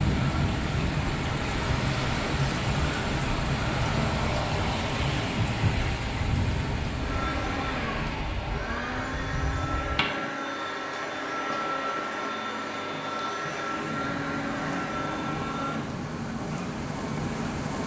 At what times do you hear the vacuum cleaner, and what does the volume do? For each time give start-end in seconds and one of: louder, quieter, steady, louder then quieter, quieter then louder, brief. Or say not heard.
6.9-15.9 steady.